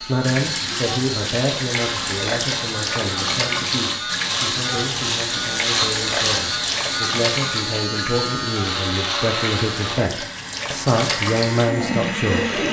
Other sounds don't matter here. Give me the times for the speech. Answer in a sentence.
You can hear the speech from 0.1 to 12.6 s.